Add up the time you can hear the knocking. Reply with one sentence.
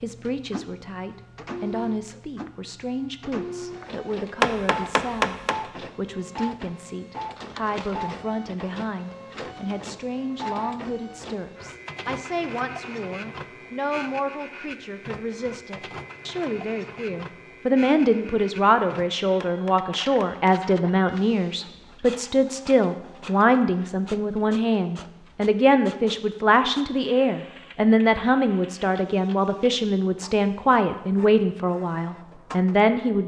The knocking can be heard for 2 seconds in total.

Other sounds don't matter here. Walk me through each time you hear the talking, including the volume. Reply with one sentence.
The talking can be heard from 0.0 to 33.2 s, getting louder.